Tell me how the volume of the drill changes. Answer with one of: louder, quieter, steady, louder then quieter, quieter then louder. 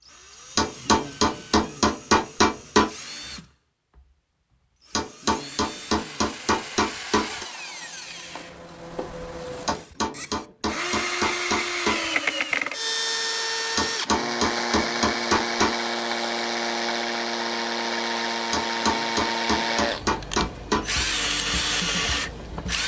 louder.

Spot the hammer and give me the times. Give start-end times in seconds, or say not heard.
0.6-2.9, 4.9-7.5, 9.7-12.1, 13.8-15.8, 18.5-21.1.